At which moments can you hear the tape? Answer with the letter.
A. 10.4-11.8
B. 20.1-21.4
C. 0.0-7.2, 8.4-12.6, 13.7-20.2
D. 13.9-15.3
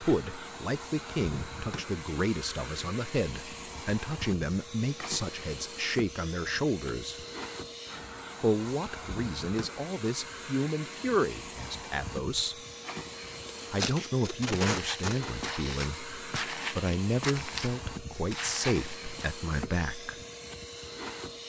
D.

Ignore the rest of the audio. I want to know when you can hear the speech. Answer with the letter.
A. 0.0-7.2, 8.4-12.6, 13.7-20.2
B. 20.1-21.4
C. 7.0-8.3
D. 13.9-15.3
A.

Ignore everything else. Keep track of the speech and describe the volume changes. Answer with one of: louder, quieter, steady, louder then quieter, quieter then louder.
steady.